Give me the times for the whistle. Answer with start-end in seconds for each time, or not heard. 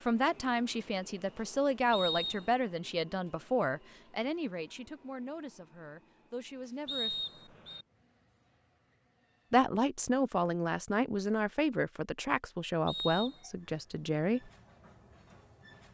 1.9-2.5, 6.8-7.8, 12.8-13.4.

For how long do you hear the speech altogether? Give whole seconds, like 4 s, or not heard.
12 s.